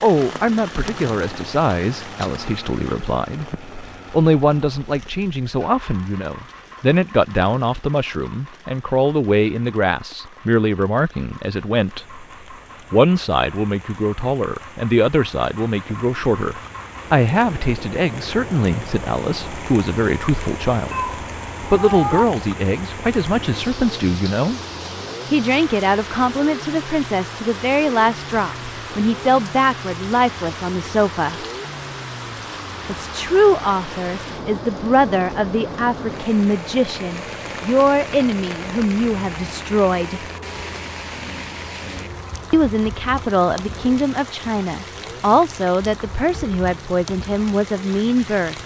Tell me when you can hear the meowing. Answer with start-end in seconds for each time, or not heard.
20.9-22.2.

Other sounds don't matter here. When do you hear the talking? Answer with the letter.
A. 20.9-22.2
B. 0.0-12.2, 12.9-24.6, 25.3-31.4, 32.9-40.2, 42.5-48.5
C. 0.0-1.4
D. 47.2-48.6
B.